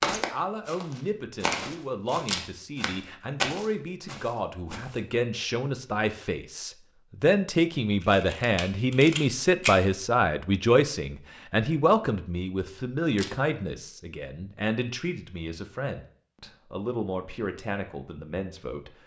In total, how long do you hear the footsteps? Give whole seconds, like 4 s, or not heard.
5 s.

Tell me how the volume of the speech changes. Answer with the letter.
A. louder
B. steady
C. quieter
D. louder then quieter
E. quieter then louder
D.